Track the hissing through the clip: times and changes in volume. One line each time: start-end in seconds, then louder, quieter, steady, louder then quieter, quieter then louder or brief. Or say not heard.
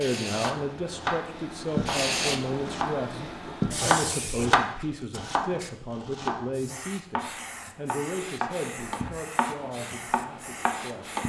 0.0-11.2 quieter then louder.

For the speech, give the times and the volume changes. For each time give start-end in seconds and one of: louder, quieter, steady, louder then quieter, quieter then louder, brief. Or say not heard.
0.0-11.2 quieter.